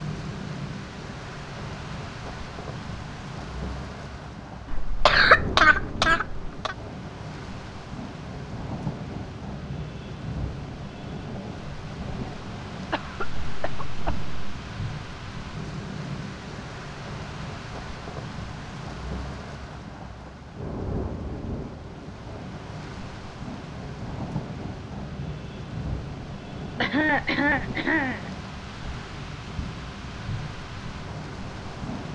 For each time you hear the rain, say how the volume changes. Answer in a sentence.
You can hear the rain from 0.0 to 32.1 s, at a steady volume.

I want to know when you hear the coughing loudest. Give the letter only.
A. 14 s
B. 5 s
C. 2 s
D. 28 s
B.